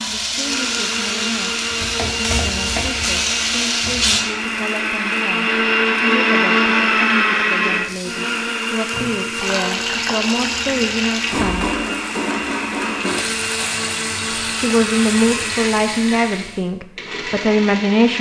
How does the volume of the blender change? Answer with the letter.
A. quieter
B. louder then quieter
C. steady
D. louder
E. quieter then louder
B.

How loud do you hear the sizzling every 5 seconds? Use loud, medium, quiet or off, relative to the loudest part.
loud, medium, loud, medium.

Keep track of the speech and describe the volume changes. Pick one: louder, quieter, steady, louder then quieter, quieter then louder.
louder.